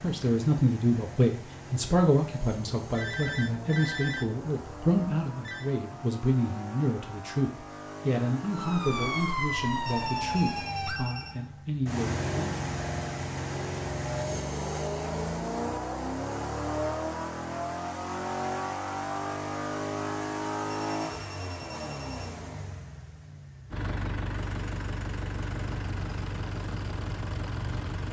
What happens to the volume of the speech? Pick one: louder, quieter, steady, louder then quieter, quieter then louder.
quieter.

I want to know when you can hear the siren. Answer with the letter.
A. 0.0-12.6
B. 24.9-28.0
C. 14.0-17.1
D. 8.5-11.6
D.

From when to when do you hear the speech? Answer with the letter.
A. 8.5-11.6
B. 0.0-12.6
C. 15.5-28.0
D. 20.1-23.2
B.